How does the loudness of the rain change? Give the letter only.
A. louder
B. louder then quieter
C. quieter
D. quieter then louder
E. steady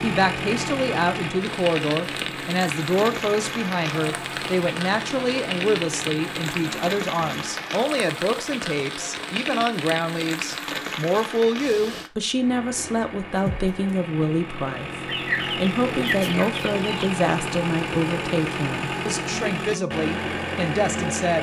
E.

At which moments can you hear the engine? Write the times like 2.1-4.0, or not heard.
0.0-7.6, 12.2-21.3.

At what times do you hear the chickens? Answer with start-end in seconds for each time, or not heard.
15.1-17.1.